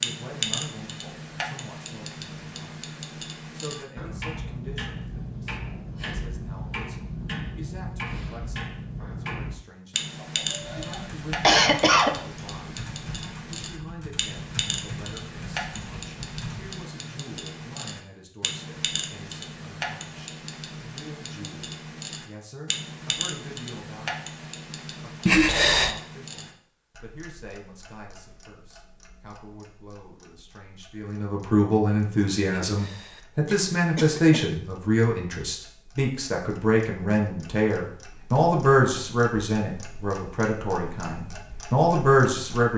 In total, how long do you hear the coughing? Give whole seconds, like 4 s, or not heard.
5 s.